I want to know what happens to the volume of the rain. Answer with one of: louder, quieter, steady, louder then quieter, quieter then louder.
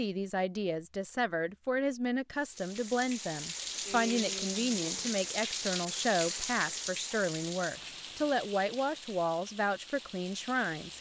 quieter.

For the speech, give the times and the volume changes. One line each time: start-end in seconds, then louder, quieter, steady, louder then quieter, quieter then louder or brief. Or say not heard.
0.0-10.9 steady.